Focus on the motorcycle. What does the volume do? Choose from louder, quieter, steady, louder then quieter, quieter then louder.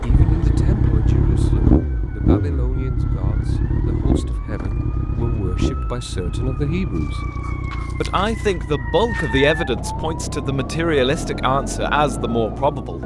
quieter.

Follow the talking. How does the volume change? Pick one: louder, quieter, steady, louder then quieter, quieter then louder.
louder.